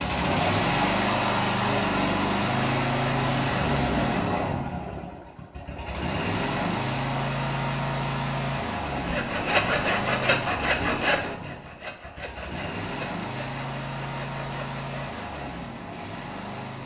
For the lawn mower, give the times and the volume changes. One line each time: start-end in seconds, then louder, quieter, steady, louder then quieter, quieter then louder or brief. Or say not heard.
0.0-16.8 quieter.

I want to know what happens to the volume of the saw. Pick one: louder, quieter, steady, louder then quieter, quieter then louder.
quieter.